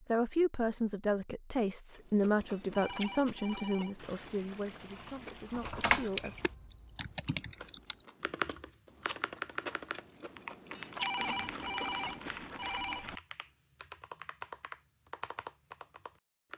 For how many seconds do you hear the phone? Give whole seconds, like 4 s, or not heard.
4 s.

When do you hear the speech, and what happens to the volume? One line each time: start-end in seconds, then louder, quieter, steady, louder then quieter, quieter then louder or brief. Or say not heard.
0.1-6.3 quieter.